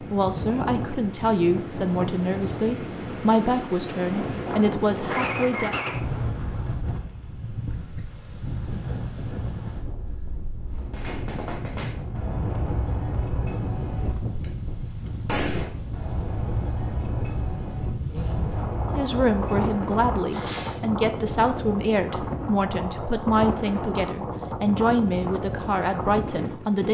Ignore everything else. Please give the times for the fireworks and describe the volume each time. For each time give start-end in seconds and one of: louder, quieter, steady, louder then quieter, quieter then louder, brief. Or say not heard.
10.8-20.9 steady.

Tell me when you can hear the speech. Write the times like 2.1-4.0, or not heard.
0.0-5.7, 18.9-26.8.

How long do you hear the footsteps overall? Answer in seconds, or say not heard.
not heard.